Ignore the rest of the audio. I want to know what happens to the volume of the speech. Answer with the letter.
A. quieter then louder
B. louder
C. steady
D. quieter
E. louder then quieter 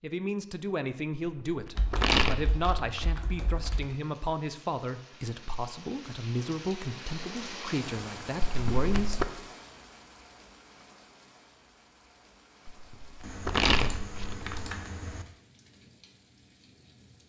C.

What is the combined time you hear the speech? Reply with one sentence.
You can hear the speech for 9 seconds altogether.